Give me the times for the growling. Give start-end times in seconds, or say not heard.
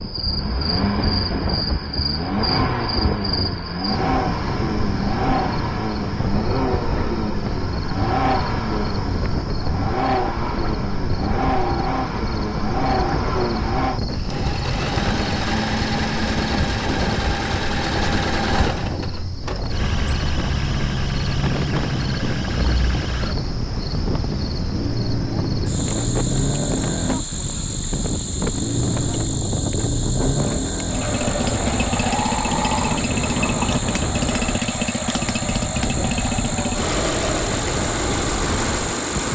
31.9-33.9.